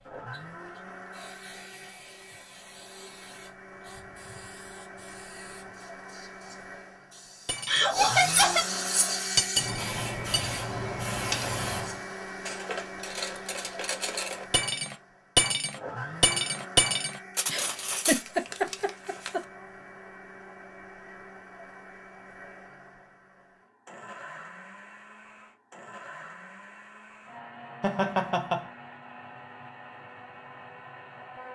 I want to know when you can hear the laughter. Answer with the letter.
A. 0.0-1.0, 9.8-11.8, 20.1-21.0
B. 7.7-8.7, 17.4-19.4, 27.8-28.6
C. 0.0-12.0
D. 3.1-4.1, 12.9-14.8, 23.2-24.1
B.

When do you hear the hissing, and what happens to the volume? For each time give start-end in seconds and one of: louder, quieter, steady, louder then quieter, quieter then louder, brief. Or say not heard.
0.0-12.0 louder.